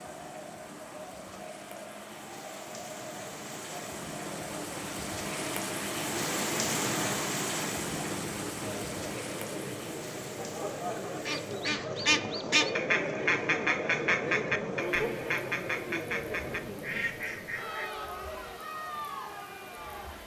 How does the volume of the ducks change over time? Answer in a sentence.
The volume of the ducks goes down.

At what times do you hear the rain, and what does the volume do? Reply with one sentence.
You can hear the rain from 0.0 to 20.2 s, getting louder then quieter.